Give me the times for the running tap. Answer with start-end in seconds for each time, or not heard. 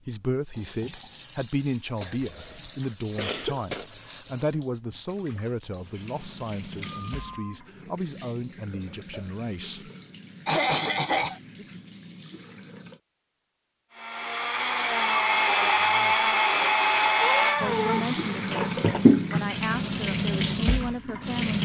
0.1-13.0, 17.6-21.6.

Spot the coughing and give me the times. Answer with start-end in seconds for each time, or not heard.
2.0-3.9, 10.4-11.4, 17.1-19.1.